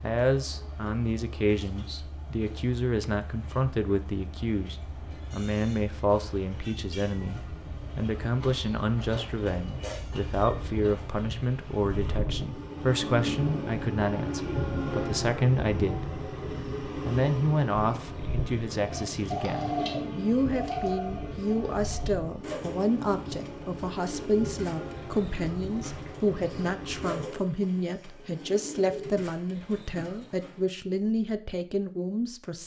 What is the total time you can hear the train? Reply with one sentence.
You can hear the train for 27 seconds altogether.